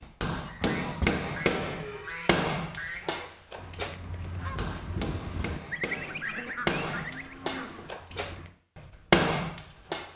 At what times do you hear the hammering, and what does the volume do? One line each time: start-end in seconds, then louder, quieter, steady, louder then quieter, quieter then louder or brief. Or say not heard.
0.0-10.1 quieter then louder.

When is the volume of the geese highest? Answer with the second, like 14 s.
6 s.